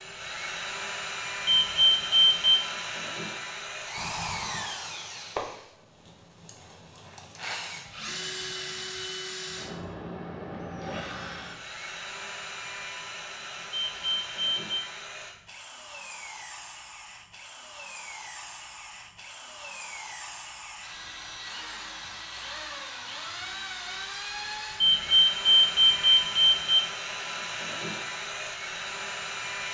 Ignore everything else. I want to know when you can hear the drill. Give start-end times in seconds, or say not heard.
0.0-29.6.